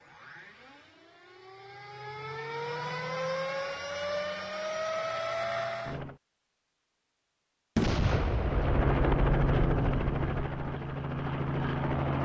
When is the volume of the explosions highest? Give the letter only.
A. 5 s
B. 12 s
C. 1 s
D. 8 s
D.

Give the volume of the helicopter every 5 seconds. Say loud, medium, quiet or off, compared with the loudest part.
medium, loud, loud.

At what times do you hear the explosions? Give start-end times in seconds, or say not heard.
7.8-10.5.